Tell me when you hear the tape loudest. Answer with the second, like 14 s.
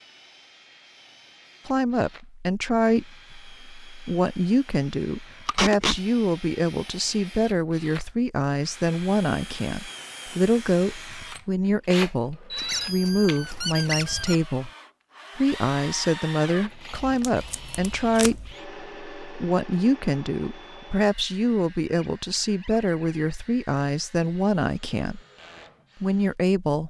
6 s.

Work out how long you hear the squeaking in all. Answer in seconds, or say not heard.
2 s.